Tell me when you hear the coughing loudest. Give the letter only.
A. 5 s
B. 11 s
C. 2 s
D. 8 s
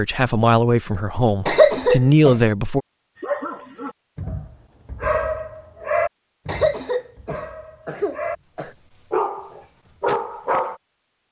C.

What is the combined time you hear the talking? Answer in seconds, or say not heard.
3 s.